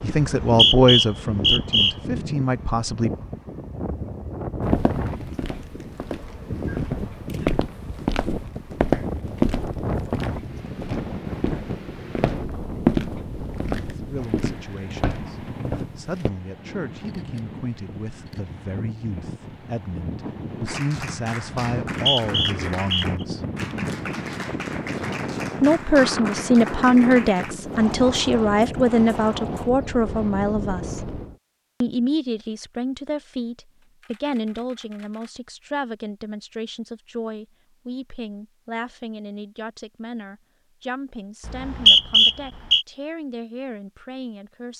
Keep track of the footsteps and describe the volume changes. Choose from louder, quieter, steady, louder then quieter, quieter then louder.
louder then quieter.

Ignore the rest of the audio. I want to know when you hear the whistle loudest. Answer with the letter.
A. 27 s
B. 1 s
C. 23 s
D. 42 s
D.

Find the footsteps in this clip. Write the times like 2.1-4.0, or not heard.
4.6-16.3.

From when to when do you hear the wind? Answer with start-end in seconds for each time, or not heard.
0.0-31.4.